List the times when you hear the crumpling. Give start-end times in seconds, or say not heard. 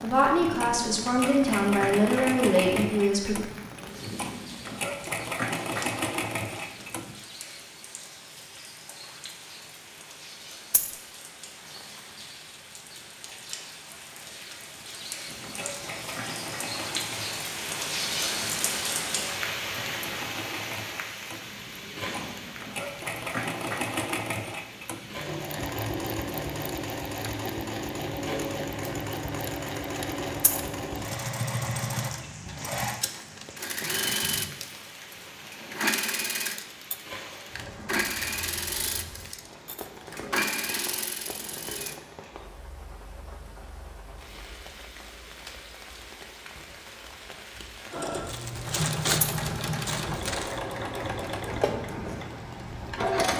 48.2-50.6.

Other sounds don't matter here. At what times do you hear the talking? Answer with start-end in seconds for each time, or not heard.
0.0-3.4.